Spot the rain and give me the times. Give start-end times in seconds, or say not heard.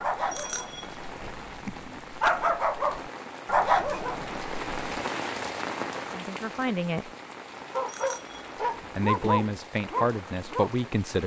0.0-11.2.